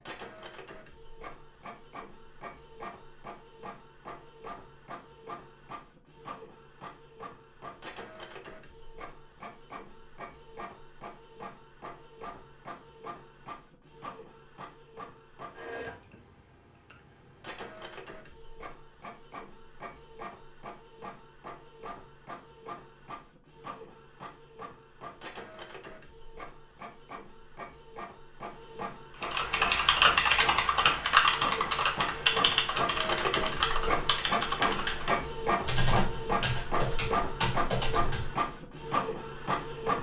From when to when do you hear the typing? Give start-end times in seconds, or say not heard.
29.2-38.4.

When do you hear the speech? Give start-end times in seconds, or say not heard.
not heard.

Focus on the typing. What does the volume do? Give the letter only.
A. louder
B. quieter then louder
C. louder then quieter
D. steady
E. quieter
E.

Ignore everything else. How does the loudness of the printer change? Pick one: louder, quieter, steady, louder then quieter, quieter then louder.
louder.